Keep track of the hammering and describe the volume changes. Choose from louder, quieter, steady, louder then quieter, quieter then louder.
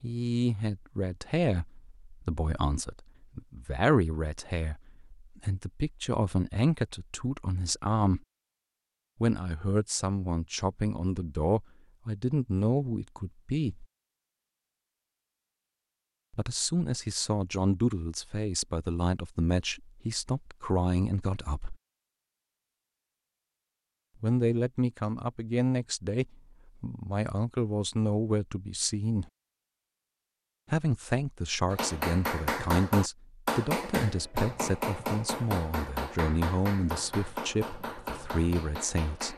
quieter.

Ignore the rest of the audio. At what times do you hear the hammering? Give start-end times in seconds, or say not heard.
31.7-39.3.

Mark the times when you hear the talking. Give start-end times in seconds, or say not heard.
0.0-8.2, 9.2-13.8, 16.3-21.8, 24.2-29.3, 30.7-39.3.